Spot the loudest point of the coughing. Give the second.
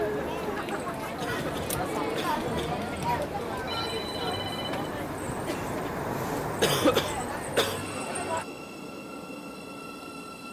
7 s.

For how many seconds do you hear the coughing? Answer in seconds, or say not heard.
3 s.